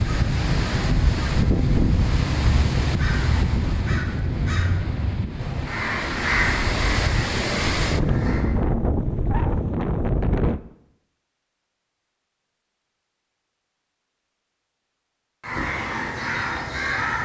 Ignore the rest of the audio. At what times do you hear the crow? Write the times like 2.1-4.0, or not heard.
0.0-8.6, 15.4-17.2.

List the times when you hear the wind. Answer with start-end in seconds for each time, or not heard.
0.0-10.6.